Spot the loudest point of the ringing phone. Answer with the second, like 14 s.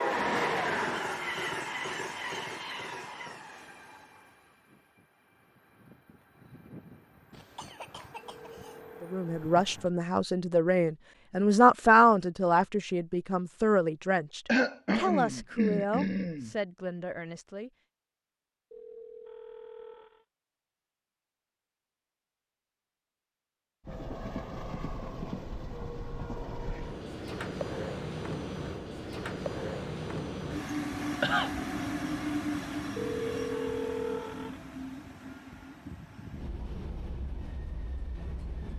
34 s.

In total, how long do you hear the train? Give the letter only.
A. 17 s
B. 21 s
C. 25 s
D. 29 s
C.